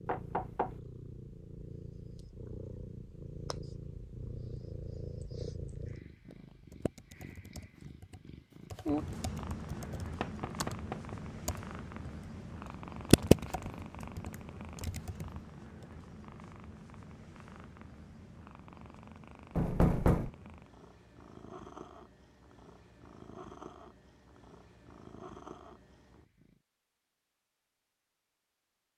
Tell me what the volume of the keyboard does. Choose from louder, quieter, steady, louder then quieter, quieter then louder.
louder then quieter.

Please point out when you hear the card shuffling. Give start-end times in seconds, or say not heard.
not heard.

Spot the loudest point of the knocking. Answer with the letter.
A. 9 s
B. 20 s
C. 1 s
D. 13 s
B.